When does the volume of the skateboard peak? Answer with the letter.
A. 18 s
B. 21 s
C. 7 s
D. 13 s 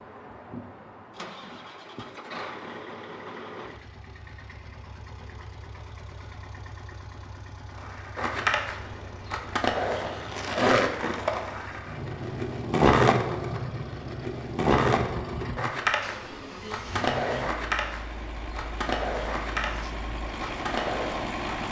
D.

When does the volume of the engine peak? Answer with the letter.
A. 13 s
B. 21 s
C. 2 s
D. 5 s
B.